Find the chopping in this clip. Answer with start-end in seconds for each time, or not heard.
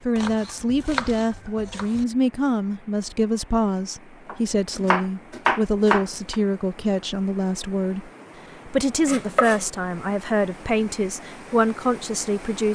0.1-2.0, 4.2-6.3, 9.1-9.7.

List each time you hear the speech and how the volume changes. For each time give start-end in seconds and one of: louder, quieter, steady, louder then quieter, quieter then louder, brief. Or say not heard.
0.1-12.6 steady.